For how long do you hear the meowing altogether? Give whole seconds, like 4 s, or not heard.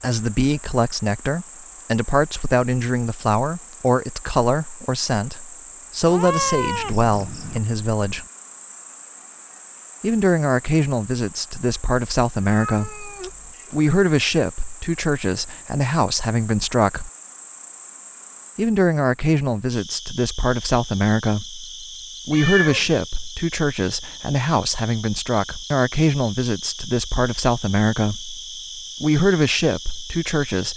4 s.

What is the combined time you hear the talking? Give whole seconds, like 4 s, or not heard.
26 s.